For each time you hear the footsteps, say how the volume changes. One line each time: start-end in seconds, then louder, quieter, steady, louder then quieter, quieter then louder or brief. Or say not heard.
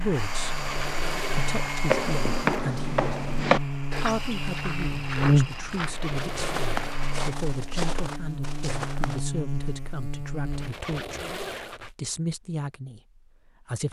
1.9-9.2 quieter.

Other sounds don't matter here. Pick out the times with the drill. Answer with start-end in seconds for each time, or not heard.
0.0-7.3.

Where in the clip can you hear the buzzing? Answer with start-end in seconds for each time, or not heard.
0.0-10.8.